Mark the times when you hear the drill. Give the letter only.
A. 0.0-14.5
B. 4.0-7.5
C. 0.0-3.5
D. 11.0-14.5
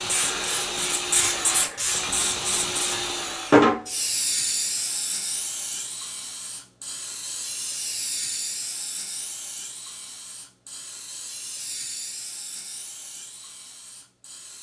C.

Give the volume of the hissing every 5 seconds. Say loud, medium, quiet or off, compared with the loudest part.
loud, medium, quiet.